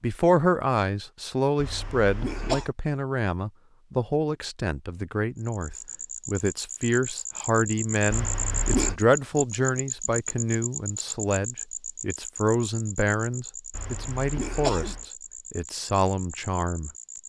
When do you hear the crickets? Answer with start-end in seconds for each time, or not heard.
5.3-17.2.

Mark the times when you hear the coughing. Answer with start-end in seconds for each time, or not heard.
1.6-2.7, 8.1-9.0, 13.7-15.1.